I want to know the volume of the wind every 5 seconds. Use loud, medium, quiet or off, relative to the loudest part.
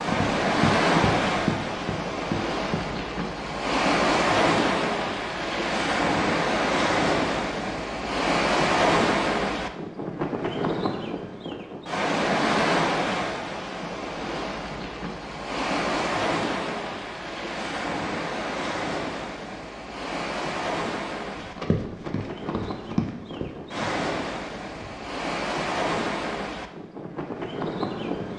loud, loud, loud, medium, medium, medium.